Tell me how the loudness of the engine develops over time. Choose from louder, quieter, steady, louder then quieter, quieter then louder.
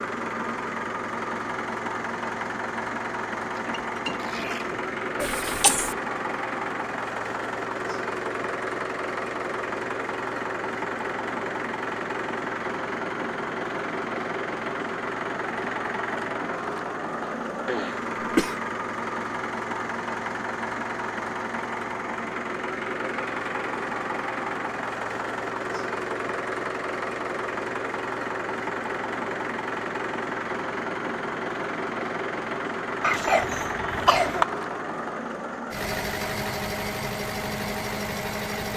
steady.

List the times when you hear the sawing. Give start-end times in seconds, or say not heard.
not heard.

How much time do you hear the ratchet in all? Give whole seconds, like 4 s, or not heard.
3 s.